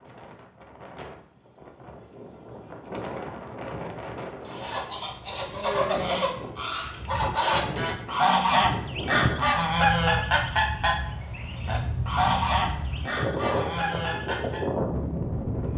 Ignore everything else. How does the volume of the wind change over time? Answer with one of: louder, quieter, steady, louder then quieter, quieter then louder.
louder.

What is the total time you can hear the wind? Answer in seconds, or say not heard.
16 s.